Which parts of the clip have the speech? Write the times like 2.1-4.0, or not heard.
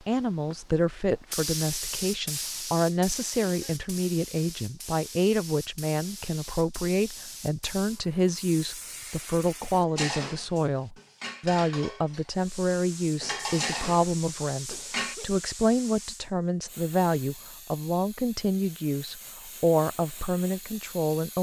0.1-21.3.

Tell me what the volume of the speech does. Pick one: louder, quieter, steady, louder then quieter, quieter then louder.
steady.